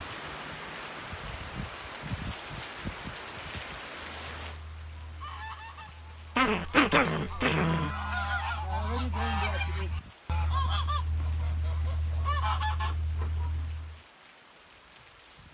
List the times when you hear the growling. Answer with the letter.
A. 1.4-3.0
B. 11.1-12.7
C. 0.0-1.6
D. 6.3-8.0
D.